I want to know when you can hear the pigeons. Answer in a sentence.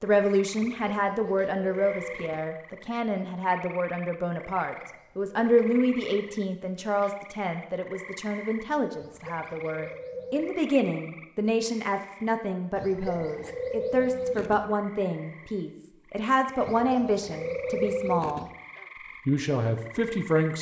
The pigeons can be heard from 0.6 to 2.5 s, from 4.8 to 6.4 s, from 8.9 to 10.6 s, from 12.8 to 14.7 s and from 16.6 to 18.5 s.